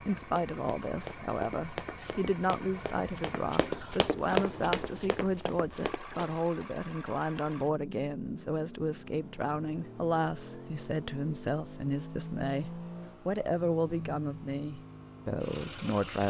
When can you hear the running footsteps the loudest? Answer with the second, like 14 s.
4 s.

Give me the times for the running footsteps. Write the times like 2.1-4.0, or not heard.
0.3-6.4.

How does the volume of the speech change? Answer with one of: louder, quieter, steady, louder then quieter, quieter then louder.
steady.